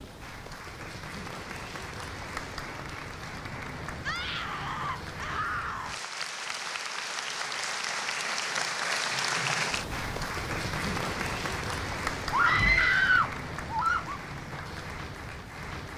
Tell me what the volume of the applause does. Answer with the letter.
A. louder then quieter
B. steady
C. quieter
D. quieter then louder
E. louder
A.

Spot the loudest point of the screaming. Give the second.
13 s.